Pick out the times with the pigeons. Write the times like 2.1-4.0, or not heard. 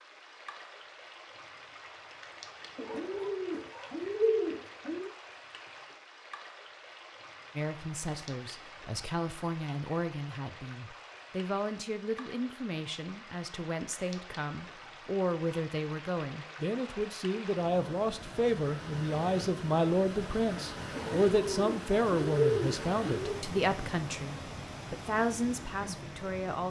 2.8-5.1, 20.9-23.4.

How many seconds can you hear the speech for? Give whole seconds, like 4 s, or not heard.
19 s.